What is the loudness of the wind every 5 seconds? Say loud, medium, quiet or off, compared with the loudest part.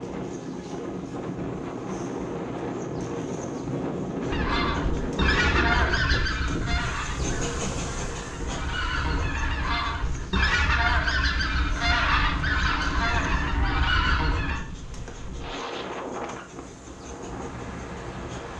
loud, loud, medium, medium.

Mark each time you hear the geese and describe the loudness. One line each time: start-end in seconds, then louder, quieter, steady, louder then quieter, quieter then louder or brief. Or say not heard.
4.3-14.6 quieter then louder.